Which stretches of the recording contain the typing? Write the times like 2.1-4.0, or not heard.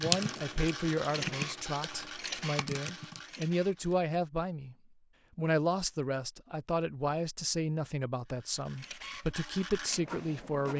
0.0-4.0.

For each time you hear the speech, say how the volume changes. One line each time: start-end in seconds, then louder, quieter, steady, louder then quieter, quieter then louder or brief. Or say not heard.
0.0-4.8 quieter then louder
5.3-10.7 steady.